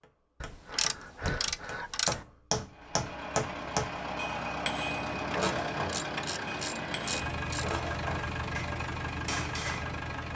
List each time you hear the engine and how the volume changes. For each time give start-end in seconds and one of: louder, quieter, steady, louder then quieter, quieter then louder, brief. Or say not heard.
2.6-10.3 steady.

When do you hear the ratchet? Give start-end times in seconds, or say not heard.
0.4-2.2, 5.3-7.8.